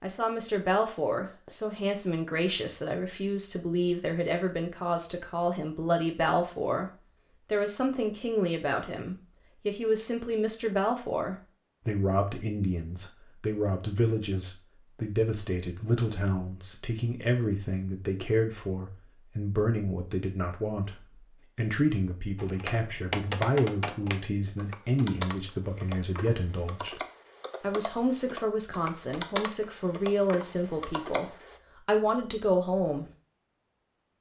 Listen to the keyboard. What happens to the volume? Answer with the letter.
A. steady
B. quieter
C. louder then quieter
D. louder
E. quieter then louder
E.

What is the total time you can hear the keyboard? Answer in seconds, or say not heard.
9 s.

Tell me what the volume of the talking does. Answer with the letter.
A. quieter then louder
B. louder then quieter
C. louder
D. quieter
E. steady
E.